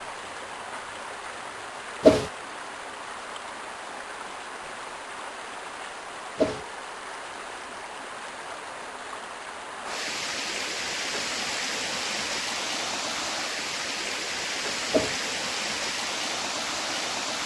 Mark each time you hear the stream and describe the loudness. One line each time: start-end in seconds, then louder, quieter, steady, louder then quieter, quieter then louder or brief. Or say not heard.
0.0-17.4 louder.